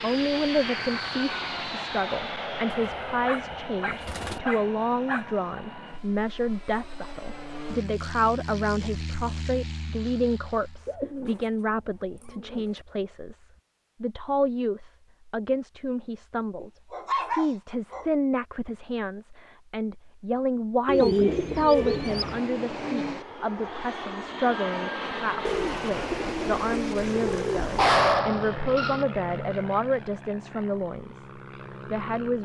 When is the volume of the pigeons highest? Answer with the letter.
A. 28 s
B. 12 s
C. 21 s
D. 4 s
C.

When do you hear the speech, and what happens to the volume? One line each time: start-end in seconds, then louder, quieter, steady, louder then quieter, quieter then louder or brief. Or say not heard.
0.0-32.3 steady.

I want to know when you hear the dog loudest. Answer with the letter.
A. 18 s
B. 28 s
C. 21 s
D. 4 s
B.